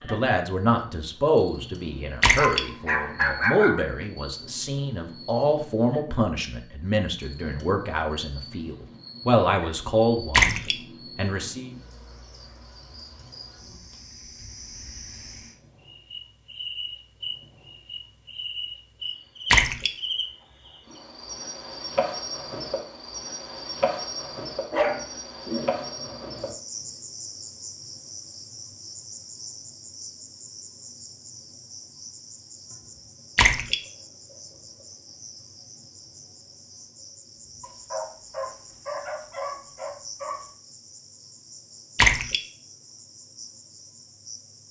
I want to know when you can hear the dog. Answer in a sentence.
You can hear the dog from 2.4 to 3.8 s, from 24.7 to 26.6 s and from 37.6 to 40.4 s.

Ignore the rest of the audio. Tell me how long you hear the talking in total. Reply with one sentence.
The talking can be heard for 12 seconds in total.